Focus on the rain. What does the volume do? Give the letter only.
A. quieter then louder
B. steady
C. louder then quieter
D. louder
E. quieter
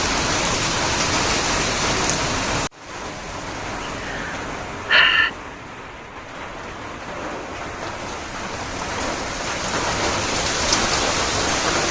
A.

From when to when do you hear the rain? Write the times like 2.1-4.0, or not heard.
0.0-11.8.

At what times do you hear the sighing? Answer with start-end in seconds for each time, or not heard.
3.8-5.3.